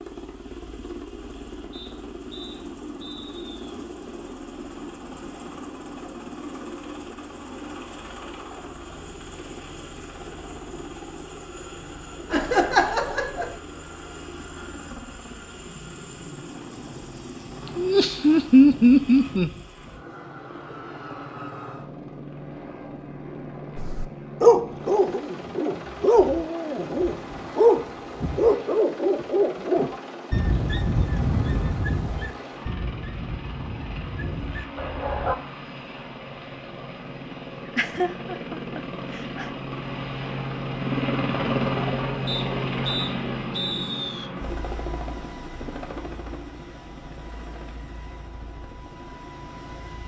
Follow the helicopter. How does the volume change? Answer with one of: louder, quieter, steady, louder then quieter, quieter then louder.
louder.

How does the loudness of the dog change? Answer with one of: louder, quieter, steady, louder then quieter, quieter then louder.
quieter.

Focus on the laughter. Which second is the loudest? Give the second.
19 s.